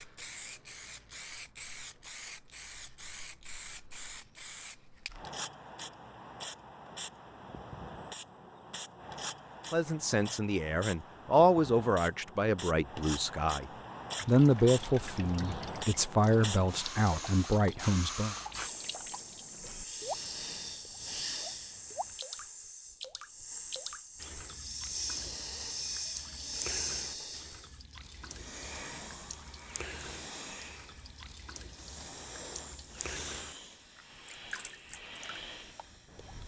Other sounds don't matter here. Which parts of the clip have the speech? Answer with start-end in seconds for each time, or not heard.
9.7-13.7, 14.2-18.4.